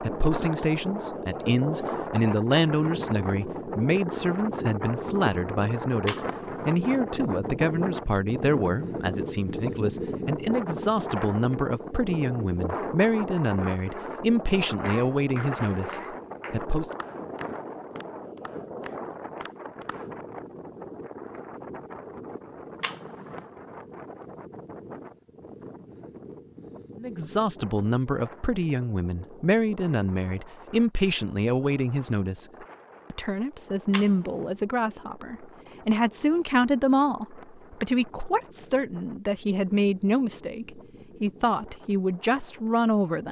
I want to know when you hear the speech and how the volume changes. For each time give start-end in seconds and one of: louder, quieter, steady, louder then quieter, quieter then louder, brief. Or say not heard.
0.0-16.9 steady
27.0-43.2 steady.